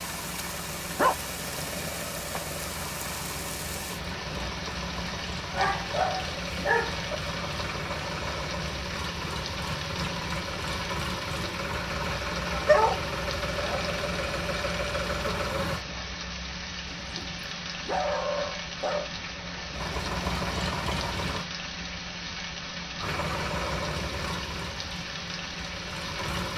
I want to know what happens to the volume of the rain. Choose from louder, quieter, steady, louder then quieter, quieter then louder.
steady.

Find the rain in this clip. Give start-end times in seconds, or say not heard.
0.0-26.5.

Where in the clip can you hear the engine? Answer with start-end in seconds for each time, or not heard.
0.0-15.8, 19.7-21.5, 22.9-26.5.